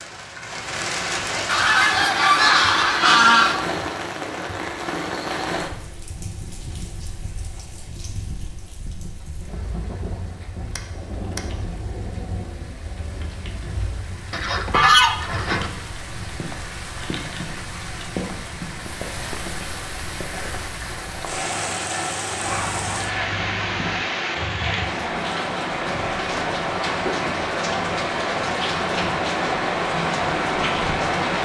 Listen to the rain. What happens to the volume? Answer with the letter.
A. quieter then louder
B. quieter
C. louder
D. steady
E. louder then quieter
A.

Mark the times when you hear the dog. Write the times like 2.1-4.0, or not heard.
not heard.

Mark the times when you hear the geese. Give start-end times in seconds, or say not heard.
1.4-3.5, 14.3-15.7, 22.4-24.1.